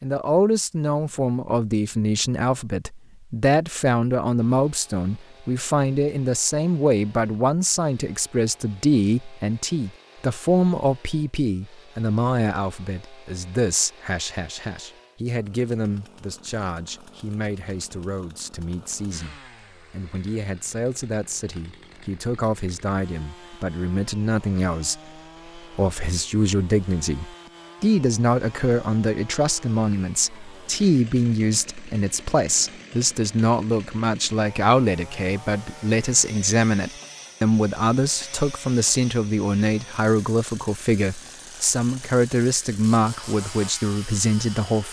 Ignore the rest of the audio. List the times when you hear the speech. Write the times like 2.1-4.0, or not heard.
0.0-44.8.